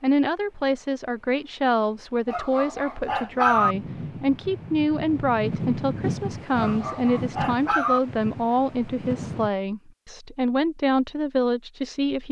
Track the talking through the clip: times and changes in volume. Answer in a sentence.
The talking can be heard from 0.0 to 12.2 s, at a steady volume.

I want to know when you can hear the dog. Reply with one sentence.
The dog can be heard from 2.2 to 3.8 s and from 6.5 to 8.0 s.